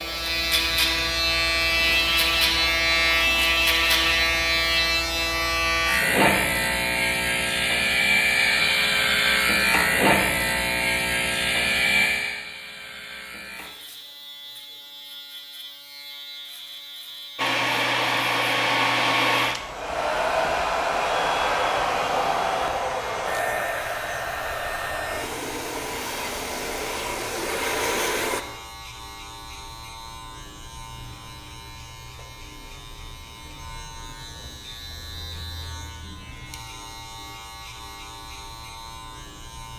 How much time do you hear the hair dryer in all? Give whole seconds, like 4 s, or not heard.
11 s.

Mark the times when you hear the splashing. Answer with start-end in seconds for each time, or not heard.
not heard.